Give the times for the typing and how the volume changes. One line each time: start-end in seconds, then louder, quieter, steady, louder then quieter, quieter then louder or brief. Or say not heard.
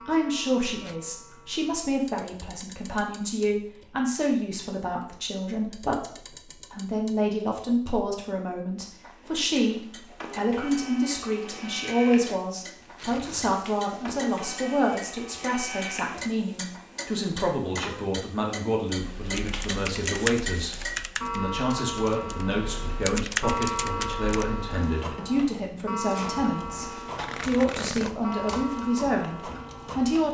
18.9-24.7 quieter then louder.